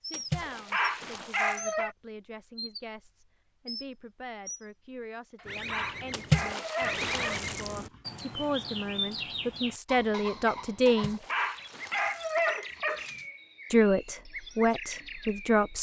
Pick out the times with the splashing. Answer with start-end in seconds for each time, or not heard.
0.1-1.6, 6.1-7.9, 10.8-12.6.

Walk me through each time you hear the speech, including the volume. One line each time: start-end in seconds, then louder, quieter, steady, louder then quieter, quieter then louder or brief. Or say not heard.
0.0-11.2 louder
13.7-15.7 brief.